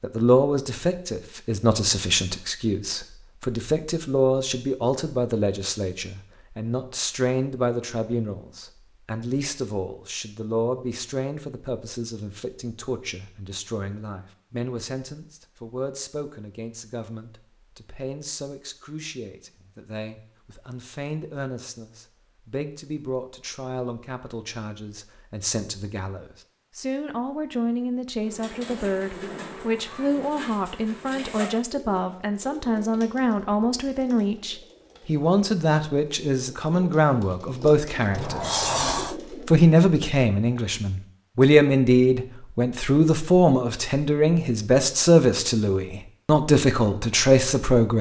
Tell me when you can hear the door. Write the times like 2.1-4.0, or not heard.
38.1-39.1.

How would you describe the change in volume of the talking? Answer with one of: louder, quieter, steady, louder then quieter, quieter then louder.
quieter then louder.